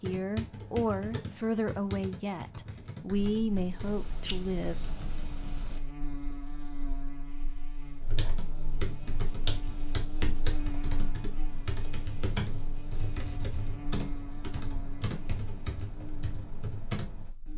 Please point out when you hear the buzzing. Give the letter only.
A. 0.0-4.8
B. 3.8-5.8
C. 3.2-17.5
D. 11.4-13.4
C.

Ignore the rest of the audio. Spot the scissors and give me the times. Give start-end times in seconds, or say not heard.
3.8-5.8.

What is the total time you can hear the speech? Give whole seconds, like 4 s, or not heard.
5 s.